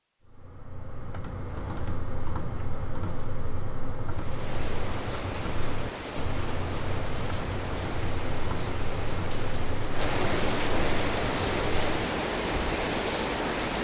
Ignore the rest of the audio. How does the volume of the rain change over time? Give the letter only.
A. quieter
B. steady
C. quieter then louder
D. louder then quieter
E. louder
E.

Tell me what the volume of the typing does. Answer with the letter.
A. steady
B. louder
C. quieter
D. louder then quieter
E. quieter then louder
A.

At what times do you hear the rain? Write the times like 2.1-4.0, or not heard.
4.0-13.7.